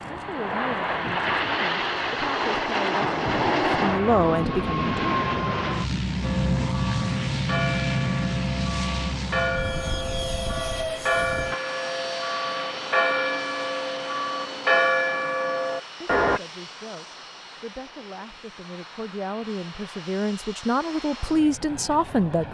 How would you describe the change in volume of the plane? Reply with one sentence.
The loudness of the plane goes down.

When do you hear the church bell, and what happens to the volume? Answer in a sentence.
The church bell can be heard from 6.2 to 16.4 s, getting louder.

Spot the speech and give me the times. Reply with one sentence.
The speech can be heard from 0.1 to 5.0 s and from 16.0 to 22.4 s.